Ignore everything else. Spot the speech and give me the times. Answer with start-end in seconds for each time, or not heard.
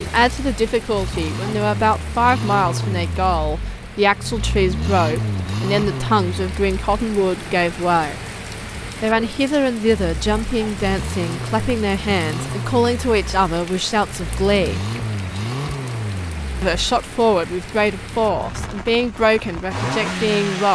0.0-8.2, 9.0-14.8, 16.6-20.6.